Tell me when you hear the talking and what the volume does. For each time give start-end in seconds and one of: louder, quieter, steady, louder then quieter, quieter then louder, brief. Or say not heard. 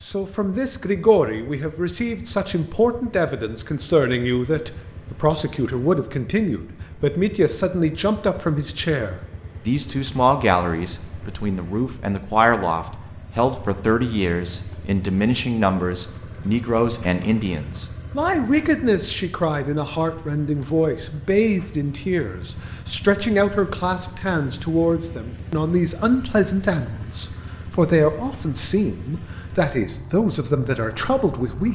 0.0-31.7 steady.